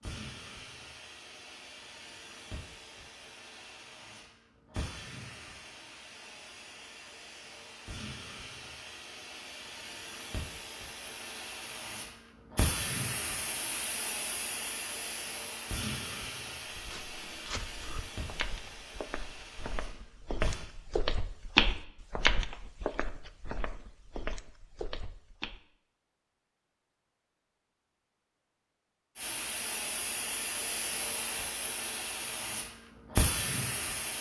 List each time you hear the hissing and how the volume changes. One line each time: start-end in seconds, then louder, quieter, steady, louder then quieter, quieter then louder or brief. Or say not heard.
0.0-20.6 louder then quieter
29.1-34.1 louder.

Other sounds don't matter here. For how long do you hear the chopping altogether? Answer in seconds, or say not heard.
not heard.